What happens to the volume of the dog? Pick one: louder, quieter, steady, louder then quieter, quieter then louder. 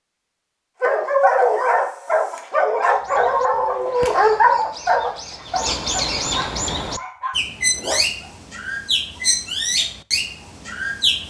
quieter.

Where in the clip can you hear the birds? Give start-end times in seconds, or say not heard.
2.8-11.2.